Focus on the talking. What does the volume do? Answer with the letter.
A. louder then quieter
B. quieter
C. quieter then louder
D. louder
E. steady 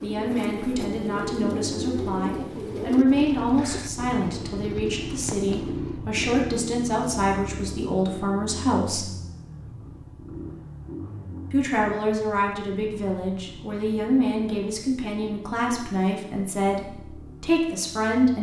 E.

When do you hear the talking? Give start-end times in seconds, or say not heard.
0.0-9.1, 11.5-18.3.